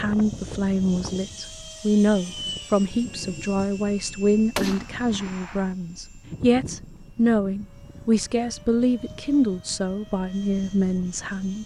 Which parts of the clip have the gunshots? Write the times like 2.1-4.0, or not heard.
4.5-5.7.